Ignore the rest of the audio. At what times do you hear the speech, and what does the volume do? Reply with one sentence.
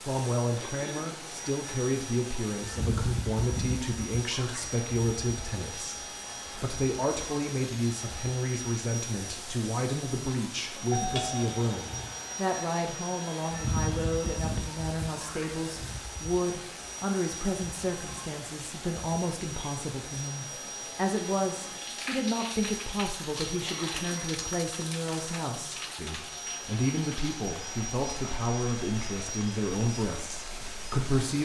You can hear the speech from 0.0 to 31.3 s, at a steady volume.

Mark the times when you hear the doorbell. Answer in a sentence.
You can hear the doorbell from 10.9 to 12.2 s.